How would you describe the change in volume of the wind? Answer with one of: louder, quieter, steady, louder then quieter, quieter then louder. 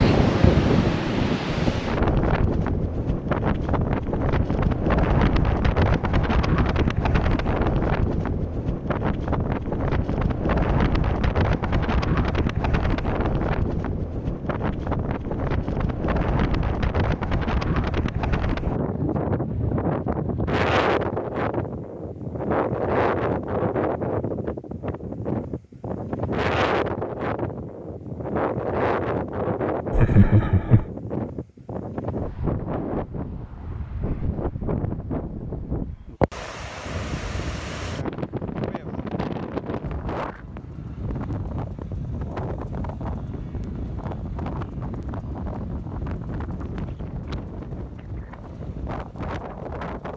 quieter.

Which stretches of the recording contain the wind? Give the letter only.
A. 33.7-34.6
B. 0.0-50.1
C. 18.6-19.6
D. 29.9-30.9
B.